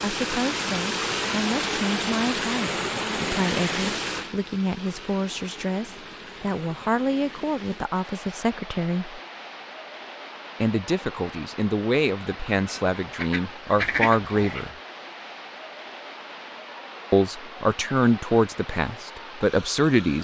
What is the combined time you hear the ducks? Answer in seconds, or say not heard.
2 s.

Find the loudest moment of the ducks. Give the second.
14 s.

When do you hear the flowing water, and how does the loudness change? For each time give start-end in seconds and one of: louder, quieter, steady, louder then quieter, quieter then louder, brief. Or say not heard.
0.0-20.2 quieter.